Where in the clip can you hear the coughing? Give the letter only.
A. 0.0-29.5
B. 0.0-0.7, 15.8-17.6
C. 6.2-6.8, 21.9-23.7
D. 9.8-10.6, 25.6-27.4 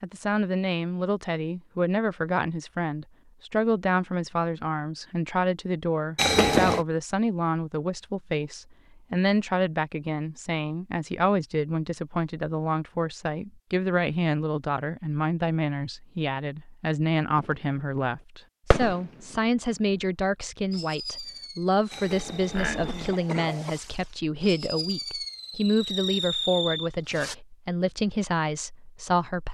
C.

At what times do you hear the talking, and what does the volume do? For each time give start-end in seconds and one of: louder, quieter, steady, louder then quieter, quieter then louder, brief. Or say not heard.
0.0-29.5 steady.